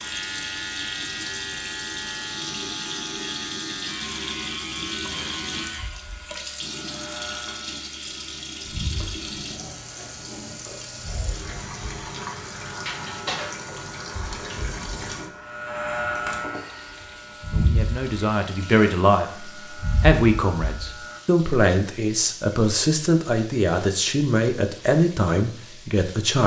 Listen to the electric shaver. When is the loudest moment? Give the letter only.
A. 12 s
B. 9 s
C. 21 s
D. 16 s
D.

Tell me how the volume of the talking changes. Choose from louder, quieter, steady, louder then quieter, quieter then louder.
steady.